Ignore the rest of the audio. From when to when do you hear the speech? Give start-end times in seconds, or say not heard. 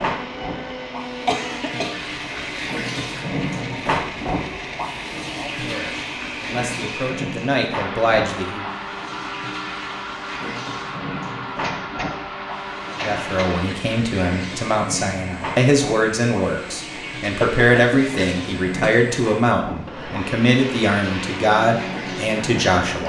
5.2-8.7, 12.9-23.0.